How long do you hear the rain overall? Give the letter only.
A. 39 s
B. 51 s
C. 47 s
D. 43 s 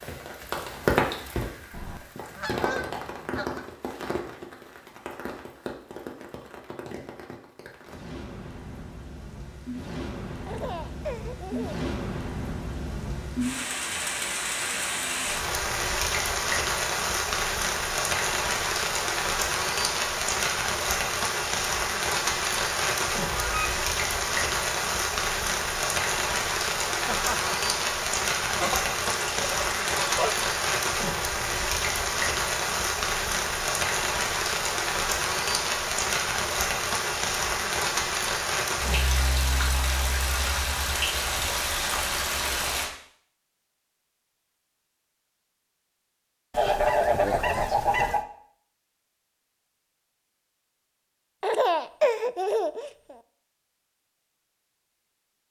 D.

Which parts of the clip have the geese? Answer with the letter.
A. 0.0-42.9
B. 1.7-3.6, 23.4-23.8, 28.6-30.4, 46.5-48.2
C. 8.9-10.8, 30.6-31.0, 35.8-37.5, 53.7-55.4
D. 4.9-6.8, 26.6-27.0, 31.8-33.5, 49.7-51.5
B.